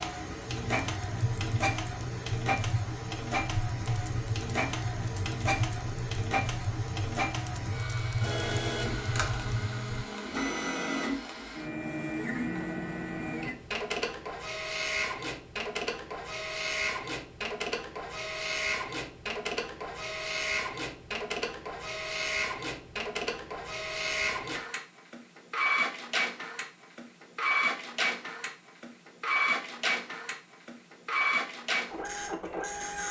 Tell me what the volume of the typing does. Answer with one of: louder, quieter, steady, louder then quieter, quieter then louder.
steady.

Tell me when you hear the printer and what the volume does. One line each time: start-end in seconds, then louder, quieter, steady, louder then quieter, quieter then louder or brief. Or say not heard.
0.0-33.0 steady.